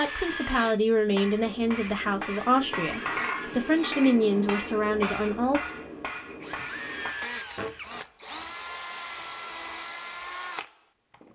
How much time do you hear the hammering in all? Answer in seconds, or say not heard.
6 s.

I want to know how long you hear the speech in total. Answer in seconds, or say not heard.
6 s.